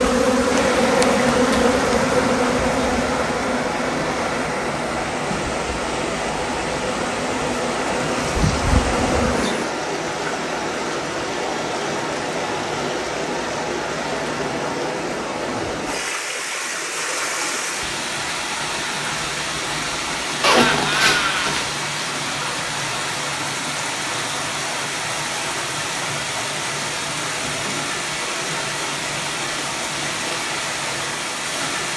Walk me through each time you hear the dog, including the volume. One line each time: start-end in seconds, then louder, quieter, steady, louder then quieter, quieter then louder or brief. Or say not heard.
not heard.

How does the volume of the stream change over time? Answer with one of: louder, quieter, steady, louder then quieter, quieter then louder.
steady.